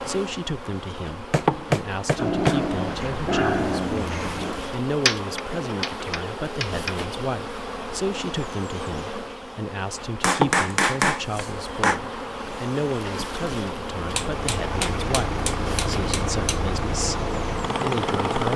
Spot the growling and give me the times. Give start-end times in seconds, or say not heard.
2.1-4.6.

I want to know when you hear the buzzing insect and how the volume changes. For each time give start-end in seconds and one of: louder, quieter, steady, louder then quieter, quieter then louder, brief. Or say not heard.
0.0-18.5 steady.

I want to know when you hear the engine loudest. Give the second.
18 s.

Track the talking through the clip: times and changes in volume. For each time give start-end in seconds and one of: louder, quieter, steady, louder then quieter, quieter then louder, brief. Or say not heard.
0.1-18.5 steady.